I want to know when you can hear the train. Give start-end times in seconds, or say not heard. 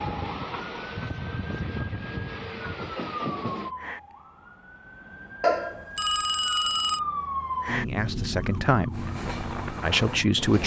0.0-3.7, 8.9-10.6.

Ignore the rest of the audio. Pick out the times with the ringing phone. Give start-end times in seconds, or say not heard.
5.4-7.0.